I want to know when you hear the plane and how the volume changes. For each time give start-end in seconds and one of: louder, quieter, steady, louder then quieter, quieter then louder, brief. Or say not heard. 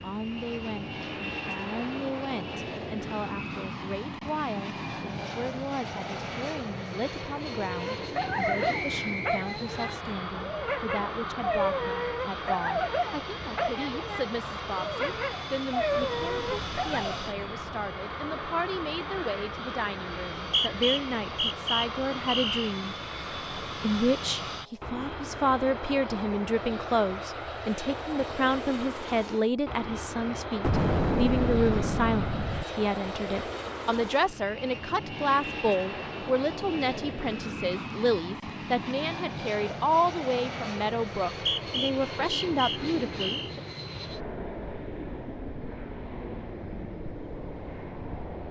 0.0-48.4 steady.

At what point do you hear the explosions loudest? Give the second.
31 s.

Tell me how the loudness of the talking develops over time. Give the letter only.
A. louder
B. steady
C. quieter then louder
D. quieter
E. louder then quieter
A.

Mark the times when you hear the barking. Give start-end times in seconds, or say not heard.
7.6-17.1.